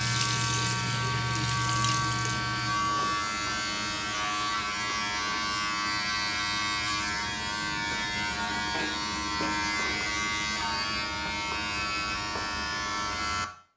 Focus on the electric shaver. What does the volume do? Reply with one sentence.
The volume of the electric shaver stays about the same.